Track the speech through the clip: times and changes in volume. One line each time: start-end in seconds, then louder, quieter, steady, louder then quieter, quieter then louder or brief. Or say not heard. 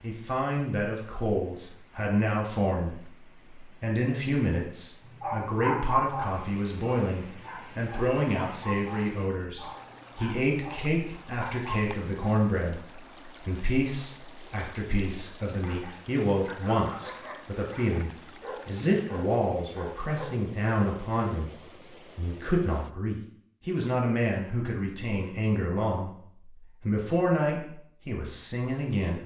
0.0-29.2 steady.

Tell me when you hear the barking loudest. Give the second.
6 s.